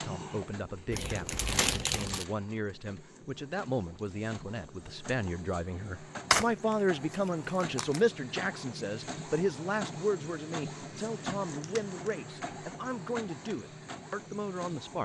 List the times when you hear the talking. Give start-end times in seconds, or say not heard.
0.0-15.0.